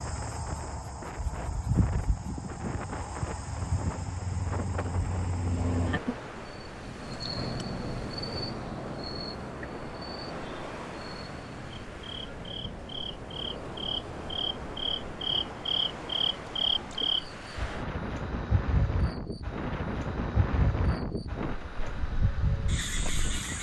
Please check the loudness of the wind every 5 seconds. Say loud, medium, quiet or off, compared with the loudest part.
medium, loud, loud, loud, loud.